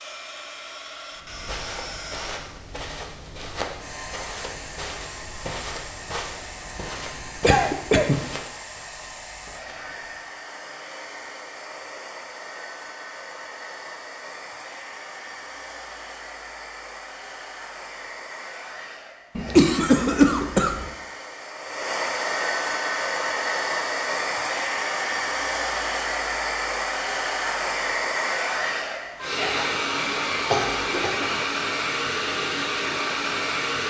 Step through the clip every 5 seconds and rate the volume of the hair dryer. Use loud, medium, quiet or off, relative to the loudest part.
quiet, quiet, quiet, quiet, loud, loud, loud.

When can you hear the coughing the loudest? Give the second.
20 s.